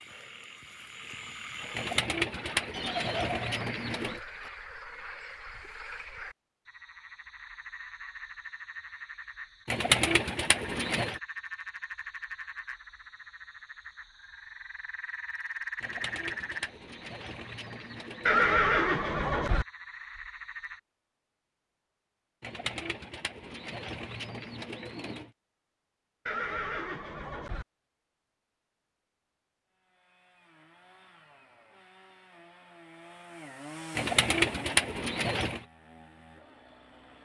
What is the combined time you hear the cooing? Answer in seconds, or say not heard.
11 s.